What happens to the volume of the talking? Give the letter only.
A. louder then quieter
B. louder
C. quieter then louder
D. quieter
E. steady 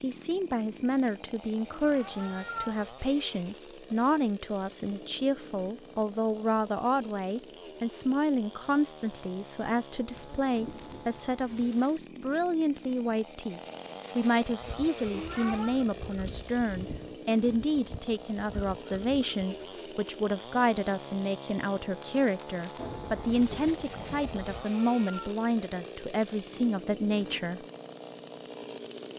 E.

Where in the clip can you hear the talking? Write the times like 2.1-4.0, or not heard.
0.0-27.6.